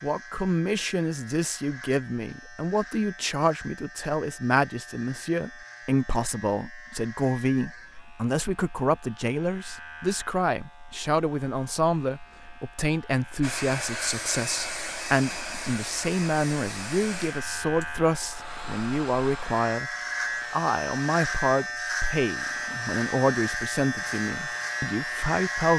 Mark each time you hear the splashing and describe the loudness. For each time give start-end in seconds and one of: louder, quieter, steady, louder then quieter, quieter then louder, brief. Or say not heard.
not heard.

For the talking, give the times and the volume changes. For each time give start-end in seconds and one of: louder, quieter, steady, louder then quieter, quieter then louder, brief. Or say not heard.
0.0-19.9 steady
20.5-25.7 quieter.